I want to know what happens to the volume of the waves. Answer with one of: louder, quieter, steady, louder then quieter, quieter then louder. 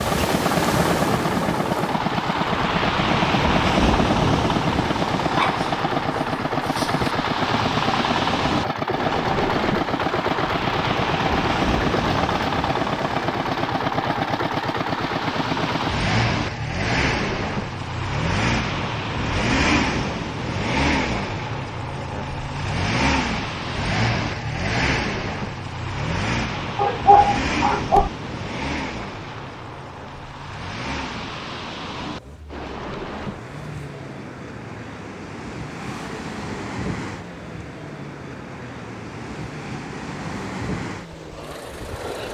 quieter.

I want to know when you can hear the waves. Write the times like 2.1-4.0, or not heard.
0.0-42.3.